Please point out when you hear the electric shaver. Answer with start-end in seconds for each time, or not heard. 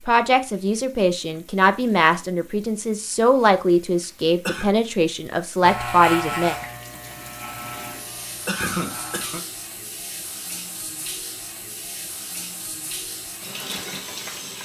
5.6-14.6.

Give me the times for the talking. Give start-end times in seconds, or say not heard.
0.1-6.5.